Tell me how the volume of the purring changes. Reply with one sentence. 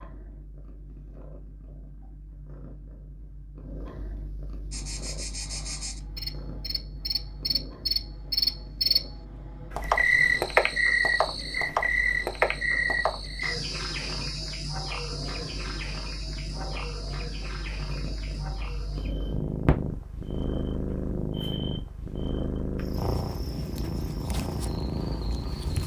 The volume of the purring goes up.